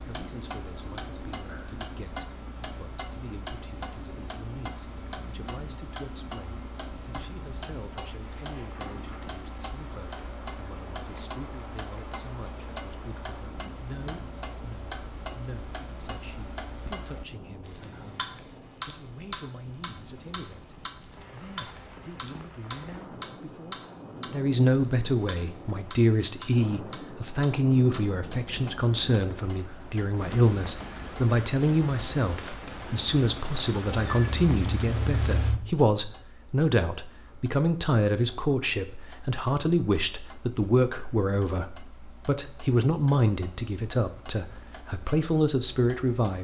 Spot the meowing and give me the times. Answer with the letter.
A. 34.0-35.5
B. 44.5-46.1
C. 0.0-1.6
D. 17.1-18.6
A.